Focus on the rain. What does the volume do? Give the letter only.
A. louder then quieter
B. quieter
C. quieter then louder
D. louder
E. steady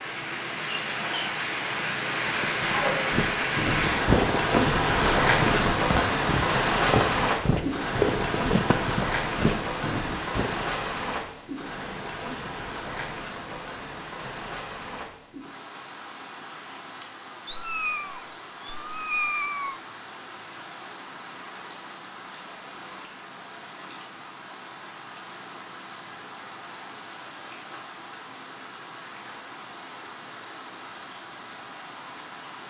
B.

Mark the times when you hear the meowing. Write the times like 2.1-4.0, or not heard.
17.4-19.8.